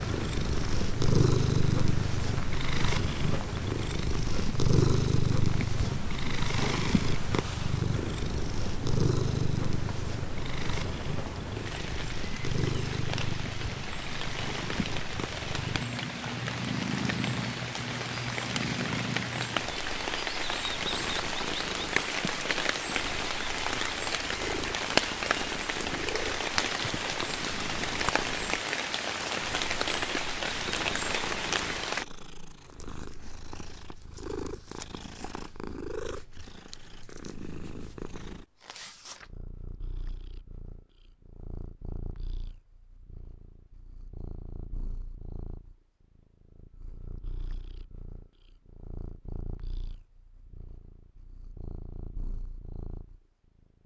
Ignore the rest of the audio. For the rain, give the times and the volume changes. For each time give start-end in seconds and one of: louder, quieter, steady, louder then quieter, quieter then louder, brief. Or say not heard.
0.0-32.0 louder.